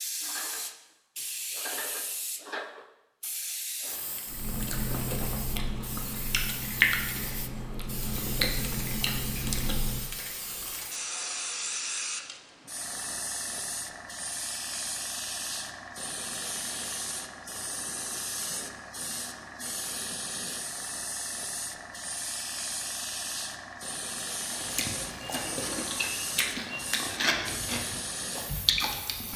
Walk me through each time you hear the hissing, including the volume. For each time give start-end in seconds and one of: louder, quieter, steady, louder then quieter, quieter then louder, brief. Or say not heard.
0.0-29.3 steady.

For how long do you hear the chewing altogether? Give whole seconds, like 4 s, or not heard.
11 s.